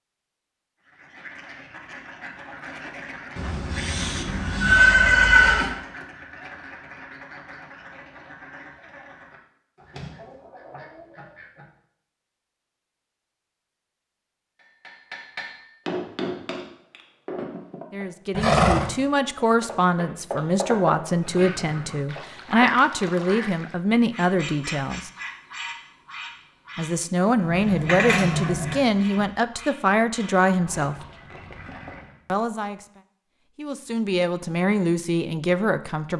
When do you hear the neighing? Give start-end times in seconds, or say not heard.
3.4-5.7, 18.3-18.9, 27.4-29.2.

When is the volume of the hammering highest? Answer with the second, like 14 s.
21 s.